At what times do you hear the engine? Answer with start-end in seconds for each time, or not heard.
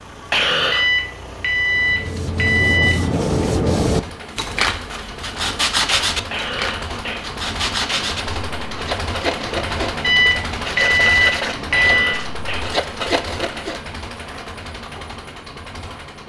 0.0-16.2.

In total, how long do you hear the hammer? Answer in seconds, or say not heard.
not heard.